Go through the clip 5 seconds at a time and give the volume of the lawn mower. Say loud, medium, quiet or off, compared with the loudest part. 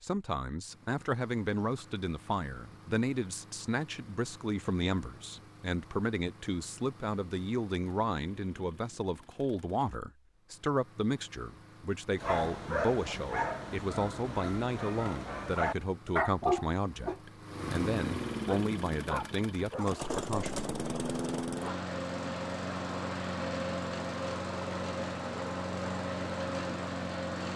quiet, quiet, quiet, medium, loud, loud.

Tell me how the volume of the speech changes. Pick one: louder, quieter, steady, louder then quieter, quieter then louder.
steady.